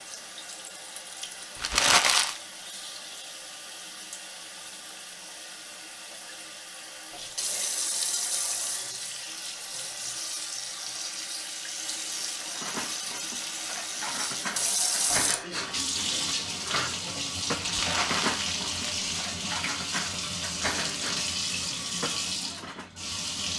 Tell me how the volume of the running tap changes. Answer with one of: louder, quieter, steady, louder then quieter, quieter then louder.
louder.